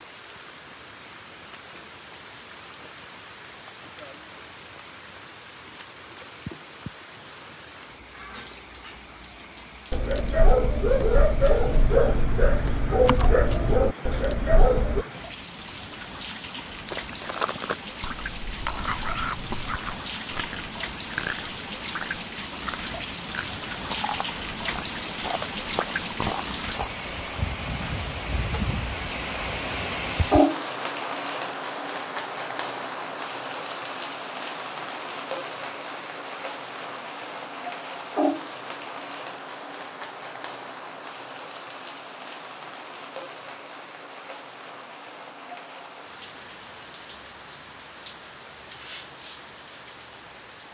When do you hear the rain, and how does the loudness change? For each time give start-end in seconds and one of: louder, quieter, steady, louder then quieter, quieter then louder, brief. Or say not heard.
0.0-50.6 louder then quieter.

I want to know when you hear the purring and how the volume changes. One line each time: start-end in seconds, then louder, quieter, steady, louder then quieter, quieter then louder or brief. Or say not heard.
not heard.